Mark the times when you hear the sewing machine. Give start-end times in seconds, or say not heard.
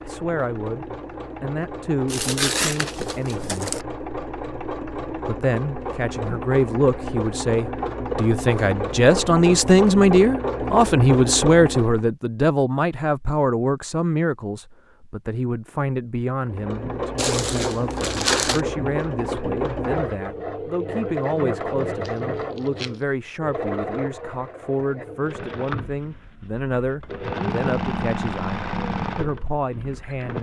0.0-12.1, 16.4-30.3.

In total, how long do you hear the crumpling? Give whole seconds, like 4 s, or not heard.
4 s.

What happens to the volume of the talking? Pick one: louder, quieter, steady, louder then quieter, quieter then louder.
louder then quieter.